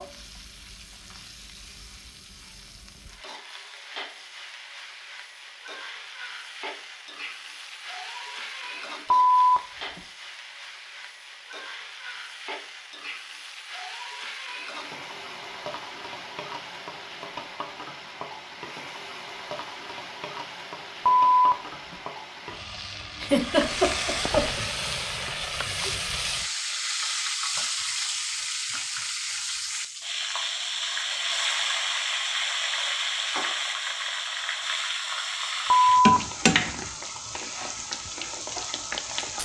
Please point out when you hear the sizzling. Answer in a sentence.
The sizzling can be heard from 0.0 to 39.4 s.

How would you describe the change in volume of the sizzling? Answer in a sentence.
The loudness of the sizzling goes up.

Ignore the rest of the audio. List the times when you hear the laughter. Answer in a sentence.
The laughter can be heard from 23.2 to 24.7 s.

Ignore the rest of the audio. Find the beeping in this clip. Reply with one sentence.
The beeping can be heard from 9.1 to 10.0 s, from 21.1 to 21.9 s and from 35.7 to 36.2 s.